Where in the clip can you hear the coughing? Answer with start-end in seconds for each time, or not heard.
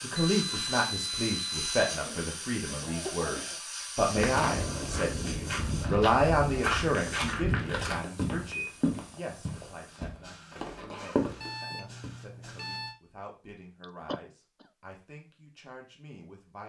1.9-3.6, 13.8-14.7.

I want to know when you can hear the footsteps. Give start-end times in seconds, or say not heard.
4.1-12.1.